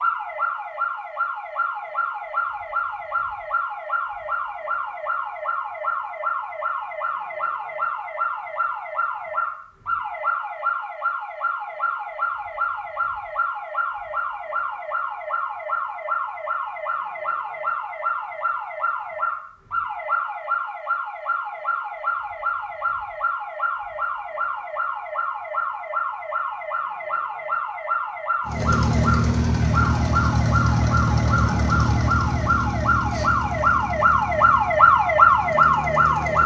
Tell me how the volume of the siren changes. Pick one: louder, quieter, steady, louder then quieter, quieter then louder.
louder.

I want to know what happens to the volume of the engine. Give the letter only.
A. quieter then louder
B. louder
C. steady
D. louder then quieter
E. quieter
E.